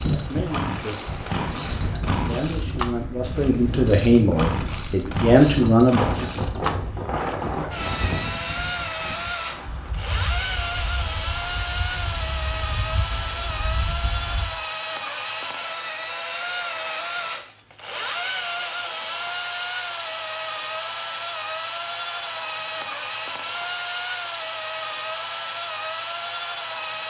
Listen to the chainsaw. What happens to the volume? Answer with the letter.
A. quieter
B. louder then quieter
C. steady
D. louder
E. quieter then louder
C.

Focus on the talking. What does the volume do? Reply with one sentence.
The volume of the talking goes up.